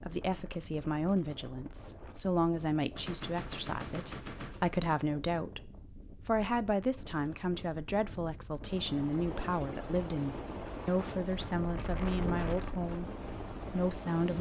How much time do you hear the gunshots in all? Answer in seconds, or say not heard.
2 s.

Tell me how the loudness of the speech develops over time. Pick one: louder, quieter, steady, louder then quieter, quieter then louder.
steady.